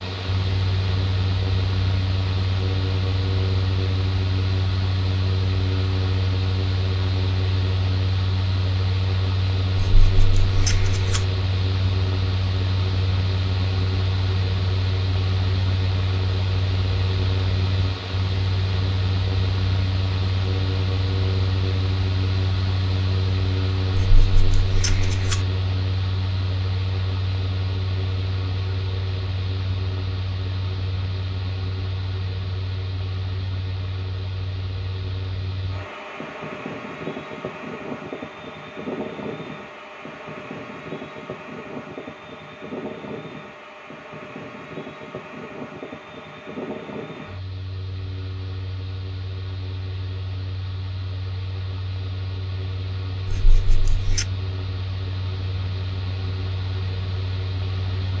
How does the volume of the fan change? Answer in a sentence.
The loudness of the fan goes down.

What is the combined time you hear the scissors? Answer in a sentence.
You can hear the scissors for 4 seconds altogether.